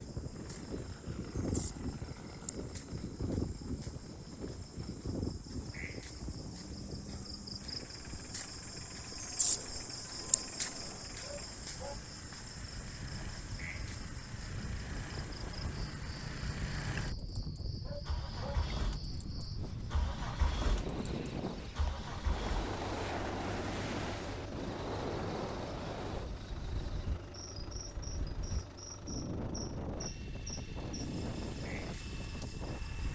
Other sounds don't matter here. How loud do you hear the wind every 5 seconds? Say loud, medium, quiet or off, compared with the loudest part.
loud, medium, medium, medium, loud, loud, loud.